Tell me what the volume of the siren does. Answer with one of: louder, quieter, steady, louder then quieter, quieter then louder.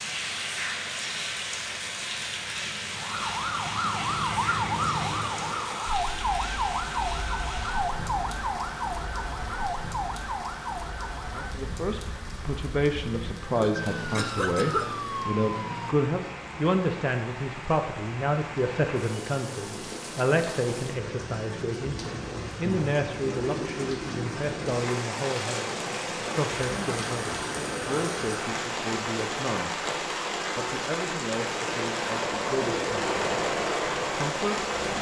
quieter then louder.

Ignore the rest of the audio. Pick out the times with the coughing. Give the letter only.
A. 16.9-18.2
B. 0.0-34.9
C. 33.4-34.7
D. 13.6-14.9
D.